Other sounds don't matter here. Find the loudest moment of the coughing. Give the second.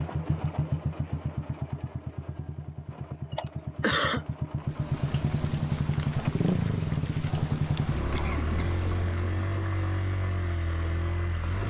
4 s.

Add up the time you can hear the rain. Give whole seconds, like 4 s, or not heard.
7 s.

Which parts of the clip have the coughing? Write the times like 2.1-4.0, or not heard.
3.3-4.2, 8.1-8.8.